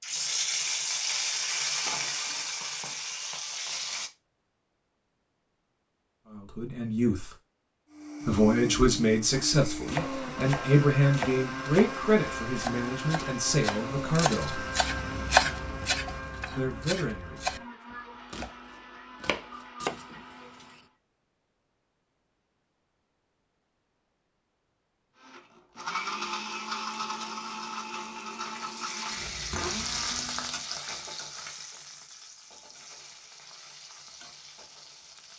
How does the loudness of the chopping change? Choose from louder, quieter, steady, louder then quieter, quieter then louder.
louder then quieter.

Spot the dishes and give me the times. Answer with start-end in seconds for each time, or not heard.
not heard.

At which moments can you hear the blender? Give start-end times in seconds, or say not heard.
7.9-20.9, 25.2-30.7.